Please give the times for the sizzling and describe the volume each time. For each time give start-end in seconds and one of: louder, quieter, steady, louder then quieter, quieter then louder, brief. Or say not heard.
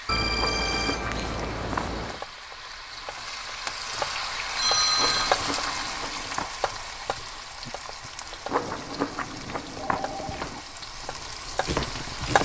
0.0-12.4 louder then quieter.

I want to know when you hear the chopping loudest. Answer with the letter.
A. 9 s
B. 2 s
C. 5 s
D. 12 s
D.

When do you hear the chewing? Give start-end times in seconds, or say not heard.
0.3-2.0, 5.0-6.5, 8.4-10.6.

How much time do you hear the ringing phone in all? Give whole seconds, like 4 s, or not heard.
4 s.